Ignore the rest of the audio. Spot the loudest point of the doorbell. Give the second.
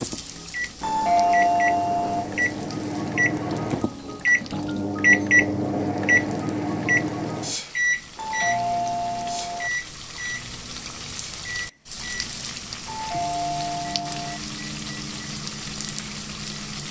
1 s.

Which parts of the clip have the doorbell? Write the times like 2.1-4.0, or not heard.
0.8-2.2, 8.2-9.7, 12.8-14.4.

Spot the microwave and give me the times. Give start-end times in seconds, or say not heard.
0.0-16.8.